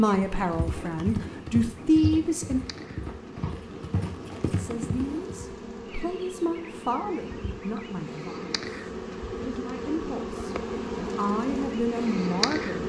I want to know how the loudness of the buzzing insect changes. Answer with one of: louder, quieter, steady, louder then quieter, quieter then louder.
louder.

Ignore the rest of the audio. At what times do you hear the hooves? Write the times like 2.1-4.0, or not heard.
0.1-5.5.